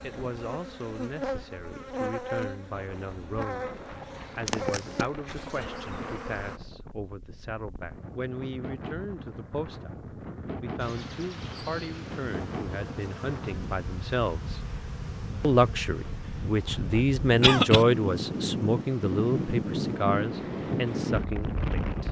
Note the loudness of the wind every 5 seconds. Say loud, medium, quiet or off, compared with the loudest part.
quiet, quiet, medium, loud, loud.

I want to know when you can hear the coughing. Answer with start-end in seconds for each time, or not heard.
4.5-5.0, 17.4-17.9.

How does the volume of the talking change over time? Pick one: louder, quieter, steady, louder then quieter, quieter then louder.
louder.